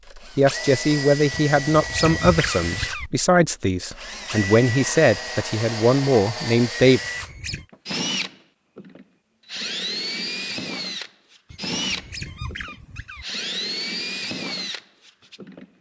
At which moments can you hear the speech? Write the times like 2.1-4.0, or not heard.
0.1-7.0.